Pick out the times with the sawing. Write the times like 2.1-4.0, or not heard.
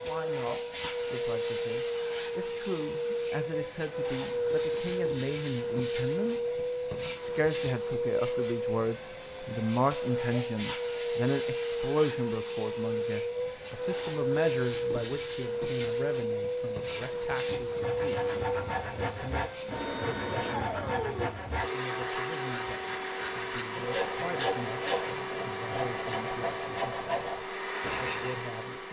16.9-28.4.